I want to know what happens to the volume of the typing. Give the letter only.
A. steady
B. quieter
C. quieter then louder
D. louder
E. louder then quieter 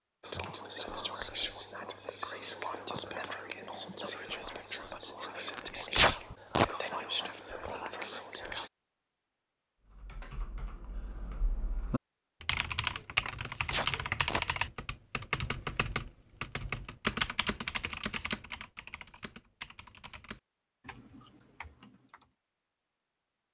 E.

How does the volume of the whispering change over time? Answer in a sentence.
The loudness of the whispering stays about the same.